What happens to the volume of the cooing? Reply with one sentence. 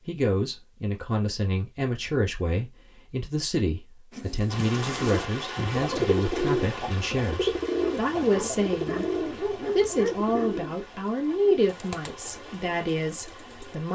The volume of the cooing goes down.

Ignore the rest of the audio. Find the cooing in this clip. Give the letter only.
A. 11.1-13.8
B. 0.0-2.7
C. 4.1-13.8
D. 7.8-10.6
C.